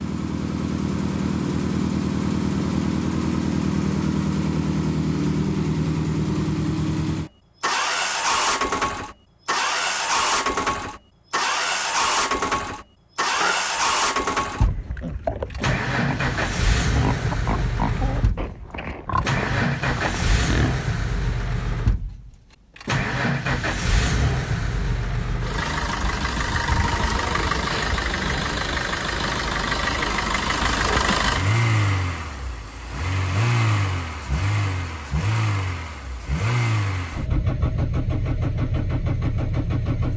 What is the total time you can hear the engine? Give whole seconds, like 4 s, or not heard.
40 s.